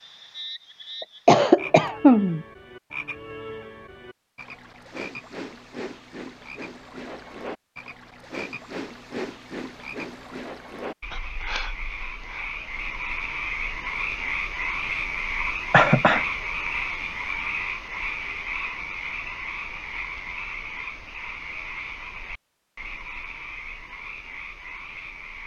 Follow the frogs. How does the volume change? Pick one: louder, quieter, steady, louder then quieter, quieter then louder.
louder then quieter.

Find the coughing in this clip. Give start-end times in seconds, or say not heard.
1.0-2.5, 15.7-16.2.